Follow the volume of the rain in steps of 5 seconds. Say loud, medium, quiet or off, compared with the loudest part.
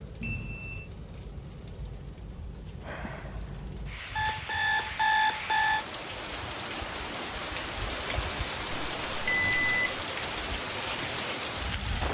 medium, loud, loud.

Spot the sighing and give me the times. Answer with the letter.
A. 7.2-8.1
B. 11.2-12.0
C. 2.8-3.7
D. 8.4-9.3
C.